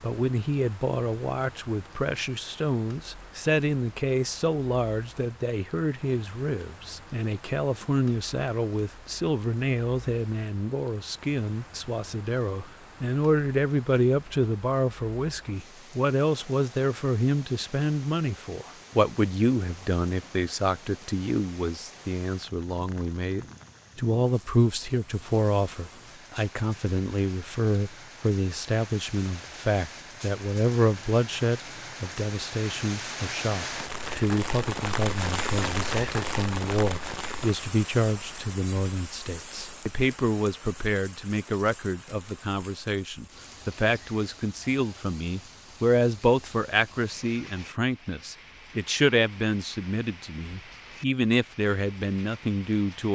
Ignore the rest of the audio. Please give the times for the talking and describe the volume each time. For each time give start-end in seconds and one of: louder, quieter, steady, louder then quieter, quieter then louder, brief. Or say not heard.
0.0-53.1 steady.